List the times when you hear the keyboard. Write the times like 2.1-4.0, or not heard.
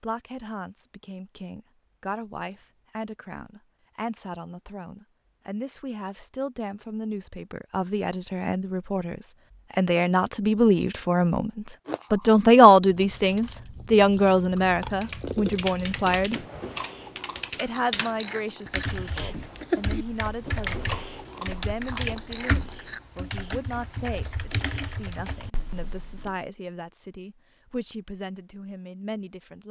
15.0-26.4.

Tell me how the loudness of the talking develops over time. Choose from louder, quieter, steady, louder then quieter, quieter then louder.
louder then quieter.